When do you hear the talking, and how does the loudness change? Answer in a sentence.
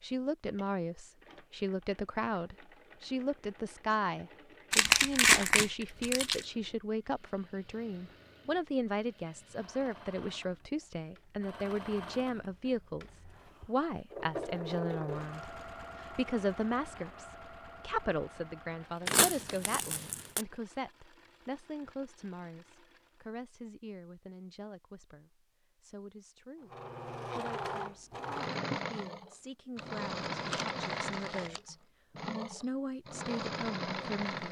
The talking can be heard from 0.0 to 34.4 s, getting quieter.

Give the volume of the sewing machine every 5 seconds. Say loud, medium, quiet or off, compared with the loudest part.
quiet, quiet, medium, medium, quiet, loud, loud.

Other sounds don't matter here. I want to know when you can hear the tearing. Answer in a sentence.
You can hear the tearing from 4.7 to 6.4 s, from 19.1 to 20.4 s and from 29.8 to 31.6 s.